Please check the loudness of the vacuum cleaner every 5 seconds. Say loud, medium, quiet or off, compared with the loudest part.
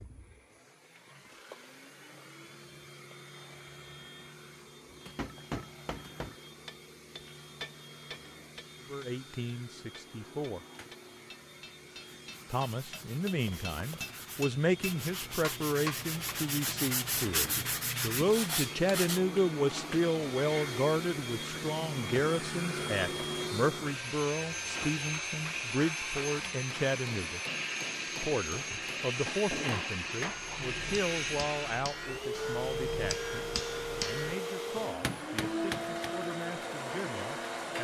quiet, quiet, quiet, medium, loud, loud, loud, loud.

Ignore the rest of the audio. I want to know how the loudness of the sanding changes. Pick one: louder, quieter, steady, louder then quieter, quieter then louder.
louder.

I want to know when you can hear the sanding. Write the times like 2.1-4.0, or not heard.
12.3-19.2.